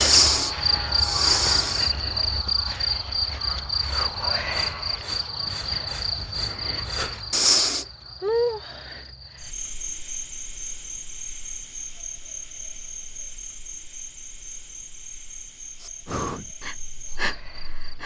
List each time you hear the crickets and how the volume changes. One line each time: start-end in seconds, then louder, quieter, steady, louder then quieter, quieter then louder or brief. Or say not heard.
0.0-18.0 quieter.